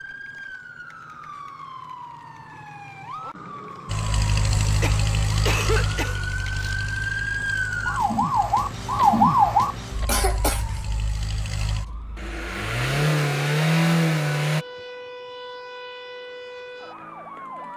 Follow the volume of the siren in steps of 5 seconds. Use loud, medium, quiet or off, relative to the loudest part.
quiet, loud, quiet, quiet.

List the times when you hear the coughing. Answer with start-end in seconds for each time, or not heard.
4.8-6.8, 10.1-10.6.